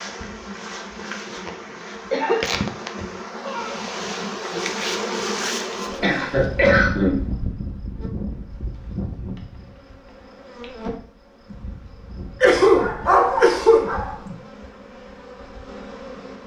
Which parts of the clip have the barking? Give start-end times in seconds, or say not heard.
12.8-14.2.